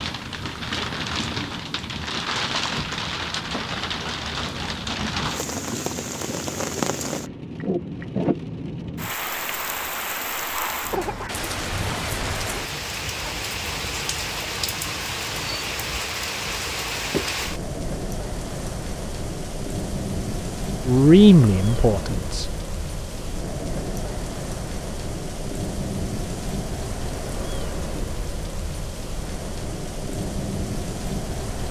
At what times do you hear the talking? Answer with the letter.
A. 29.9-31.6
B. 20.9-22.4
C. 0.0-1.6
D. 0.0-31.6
B.